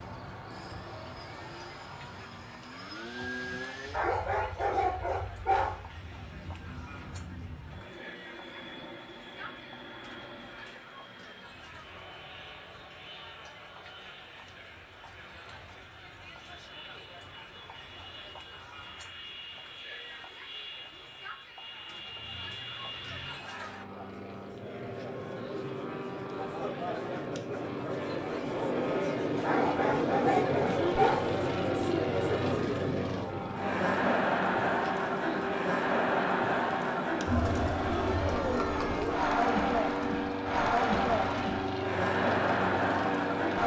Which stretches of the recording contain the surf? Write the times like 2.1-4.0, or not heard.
not heard.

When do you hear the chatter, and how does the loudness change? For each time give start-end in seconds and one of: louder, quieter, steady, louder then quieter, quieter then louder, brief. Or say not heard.
0.0-43.6 louder.